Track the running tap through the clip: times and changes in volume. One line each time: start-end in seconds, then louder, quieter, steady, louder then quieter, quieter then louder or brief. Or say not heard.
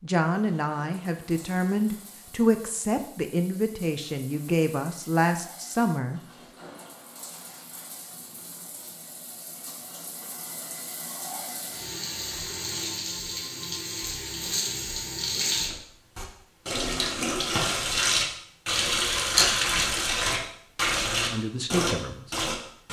0.3-22.8 louder.